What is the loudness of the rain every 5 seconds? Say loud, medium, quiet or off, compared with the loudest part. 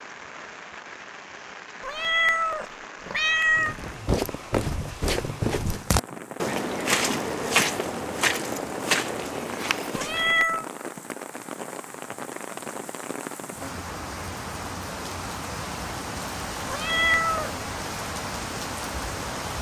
medium, medium, loud, loud.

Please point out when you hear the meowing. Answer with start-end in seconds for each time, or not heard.
1.8-3.8, 9.9-10.7, 16.6-17.5.